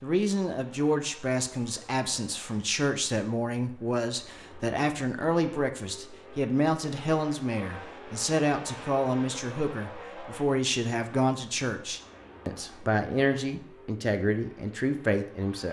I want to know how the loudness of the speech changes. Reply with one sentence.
The volume of the speech stays about the same.